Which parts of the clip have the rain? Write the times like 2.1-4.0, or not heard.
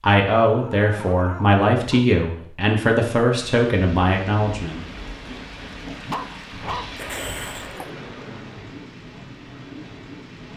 3.3-10.5.